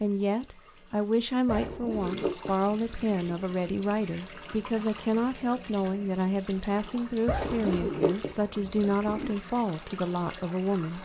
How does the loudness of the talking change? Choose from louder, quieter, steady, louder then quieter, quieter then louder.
steady.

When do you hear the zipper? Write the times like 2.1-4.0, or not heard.
1.4-3.4, 7.2-9.3.